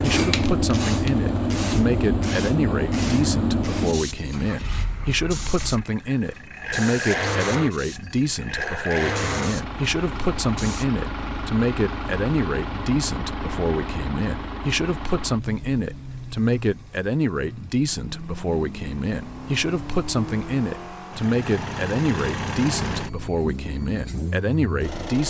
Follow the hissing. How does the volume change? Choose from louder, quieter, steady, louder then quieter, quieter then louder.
quieter.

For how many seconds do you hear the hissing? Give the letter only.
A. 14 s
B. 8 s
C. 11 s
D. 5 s
C.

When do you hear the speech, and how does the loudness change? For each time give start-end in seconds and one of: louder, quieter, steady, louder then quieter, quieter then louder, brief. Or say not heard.
0.0-25.2 steady.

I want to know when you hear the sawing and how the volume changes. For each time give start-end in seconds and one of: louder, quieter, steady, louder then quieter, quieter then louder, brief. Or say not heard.
not heard.